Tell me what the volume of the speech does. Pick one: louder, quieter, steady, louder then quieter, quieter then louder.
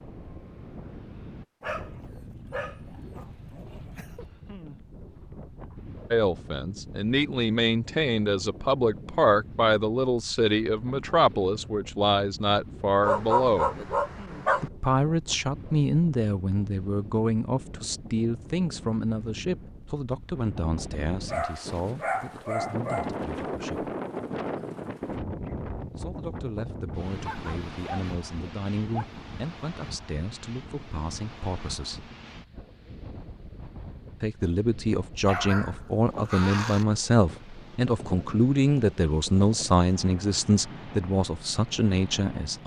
quieter then louder.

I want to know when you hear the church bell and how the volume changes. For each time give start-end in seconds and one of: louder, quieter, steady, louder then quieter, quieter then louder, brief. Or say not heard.
not heard.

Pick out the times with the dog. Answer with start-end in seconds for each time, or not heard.
1.6-4.2, 13.0-14.7, 21.2-23.1, 27.2-29.1, 35.2-36.9.